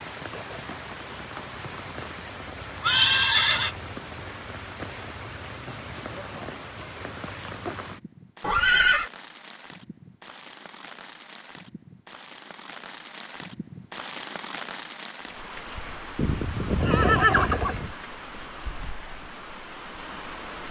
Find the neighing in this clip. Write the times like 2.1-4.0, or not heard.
2.8-3.8, 8.4-9.1, 16.1-17.9.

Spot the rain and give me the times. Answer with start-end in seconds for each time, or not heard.
0.0-20.6.